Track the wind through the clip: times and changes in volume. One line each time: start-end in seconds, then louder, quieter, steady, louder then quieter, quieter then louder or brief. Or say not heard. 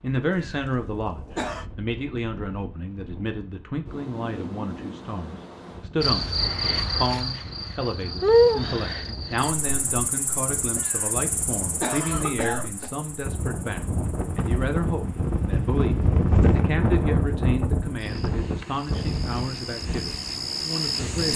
0.0-21.3 louder.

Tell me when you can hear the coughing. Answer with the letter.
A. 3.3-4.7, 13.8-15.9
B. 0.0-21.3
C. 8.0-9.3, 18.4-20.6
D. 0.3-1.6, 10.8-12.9
D.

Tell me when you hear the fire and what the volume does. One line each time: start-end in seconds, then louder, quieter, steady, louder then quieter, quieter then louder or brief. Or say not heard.
not heard.